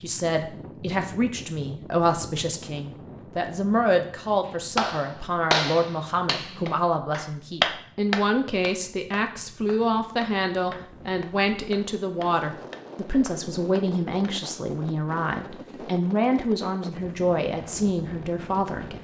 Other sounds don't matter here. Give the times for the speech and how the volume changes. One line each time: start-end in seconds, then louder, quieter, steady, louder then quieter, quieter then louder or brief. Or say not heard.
0.0-18.9 steady.